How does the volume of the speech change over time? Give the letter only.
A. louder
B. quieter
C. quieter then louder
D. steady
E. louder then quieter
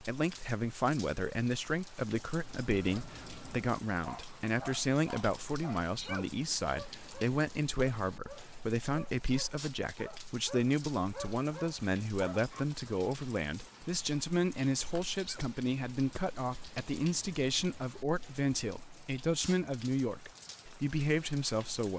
D.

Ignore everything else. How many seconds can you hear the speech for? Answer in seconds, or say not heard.
22 s.